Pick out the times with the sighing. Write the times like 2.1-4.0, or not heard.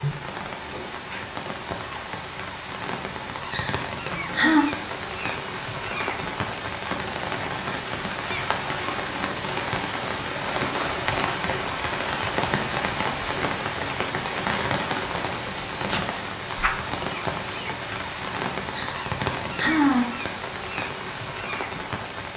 3.5-4.7, 18.8-20.1.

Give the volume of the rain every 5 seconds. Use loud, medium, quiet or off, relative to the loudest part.
medium, loud, loud, loud, medium.